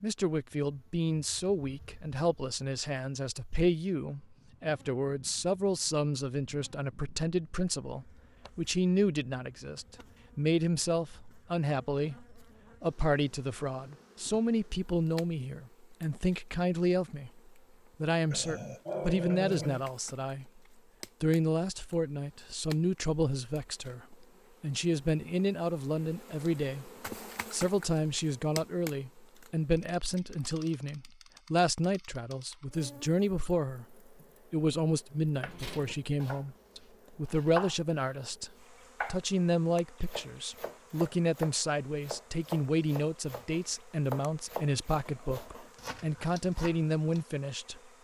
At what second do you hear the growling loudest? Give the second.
19 s.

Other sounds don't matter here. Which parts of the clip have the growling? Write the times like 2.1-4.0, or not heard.
18.3-19.9, 45.0-45.9.